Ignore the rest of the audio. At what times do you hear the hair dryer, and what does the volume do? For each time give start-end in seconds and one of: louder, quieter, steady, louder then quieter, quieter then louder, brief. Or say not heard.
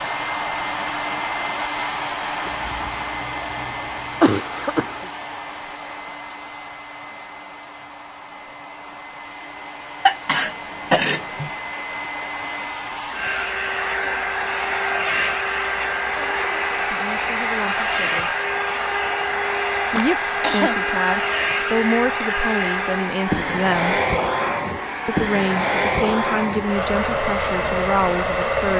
0.0-28.7 quieter then louder.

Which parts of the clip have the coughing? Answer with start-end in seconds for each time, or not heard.
2.5-5.0, 10.1-11.5, 19.9-20.8.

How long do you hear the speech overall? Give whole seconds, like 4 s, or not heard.
9 s.